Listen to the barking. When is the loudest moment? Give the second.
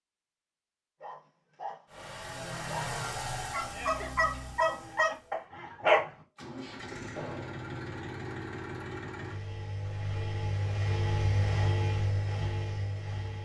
6 s.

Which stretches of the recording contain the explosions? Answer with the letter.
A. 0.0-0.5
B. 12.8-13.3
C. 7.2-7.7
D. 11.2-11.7
C.